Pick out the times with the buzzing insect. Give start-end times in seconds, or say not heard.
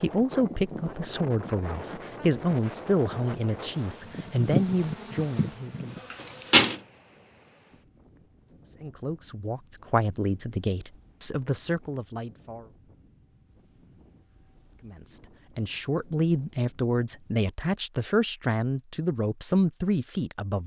0.0-6.8.